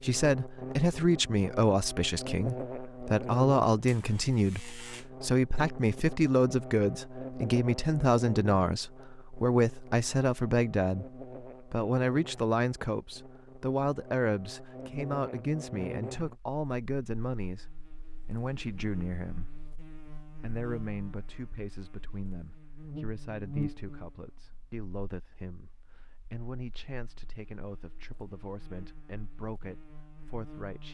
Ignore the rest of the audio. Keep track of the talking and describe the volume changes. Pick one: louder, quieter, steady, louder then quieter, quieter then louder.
quieter.